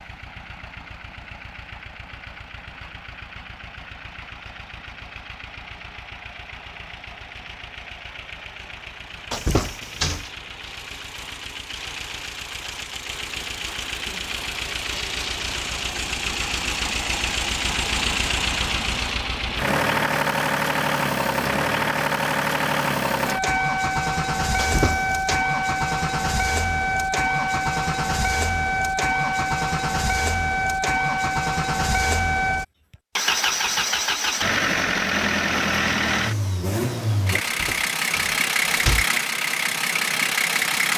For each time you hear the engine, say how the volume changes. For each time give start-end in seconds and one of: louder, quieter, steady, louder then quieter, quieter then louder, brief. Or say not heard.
0.0-40.9 louder.